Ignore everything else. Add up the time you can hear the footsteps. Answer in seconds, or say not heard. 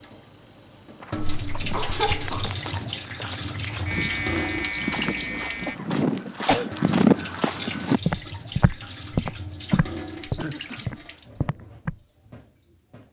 11 s.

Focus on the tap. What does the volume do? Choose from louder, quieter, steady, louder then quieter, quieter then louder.
quieter.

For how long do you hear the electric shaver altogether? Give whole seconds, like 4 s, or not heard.
2 s.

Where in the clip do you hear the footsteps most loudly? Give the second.
7 s.